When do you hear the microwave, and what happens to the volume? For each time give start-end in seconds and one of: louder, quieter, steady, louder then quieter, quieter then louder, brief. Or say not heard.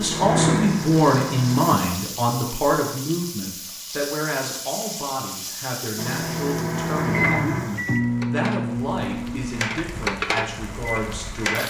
0.0-1.8 brief
6.0-11.6 quieter.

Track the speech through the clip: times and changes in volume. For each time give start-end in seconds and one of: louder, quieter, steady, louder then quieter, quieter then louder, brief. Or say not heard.
0.0-11.6 quieter.